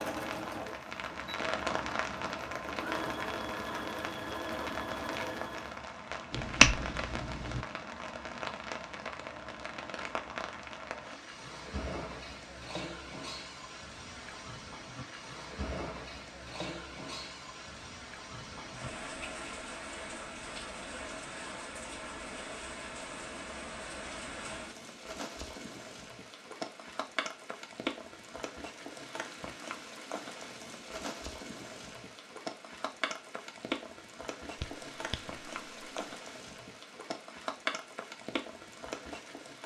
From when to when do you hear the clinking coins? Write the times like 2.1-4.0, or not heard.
not heard.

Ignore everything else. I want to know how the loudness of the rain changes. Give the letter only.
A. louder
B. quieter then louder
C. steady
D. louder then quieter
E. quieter
C.